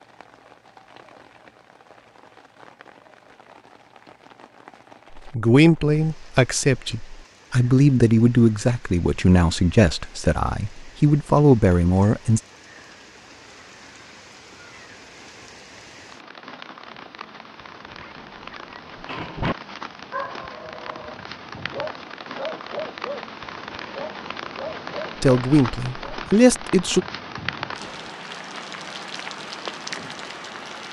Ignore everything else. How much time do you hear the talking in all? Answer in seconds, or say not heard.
9 s.